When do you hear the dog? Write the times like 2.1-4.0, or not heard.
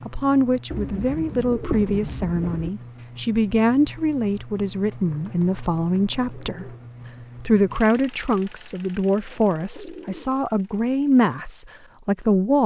not heard.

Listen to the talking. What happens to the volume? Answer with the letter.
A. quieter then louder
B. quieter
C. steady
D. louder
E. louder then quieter
C.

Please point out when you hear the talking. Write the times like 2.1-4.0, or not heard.
0.1-6.7, 7.4-12.6.